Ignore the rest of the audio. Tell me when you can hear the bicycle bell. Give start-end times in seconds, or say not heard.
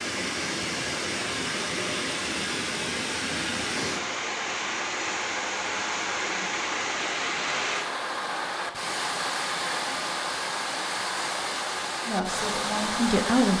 not heard.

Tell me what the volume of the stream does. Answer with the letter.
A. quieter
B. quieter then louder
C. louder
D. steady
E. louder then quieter
D.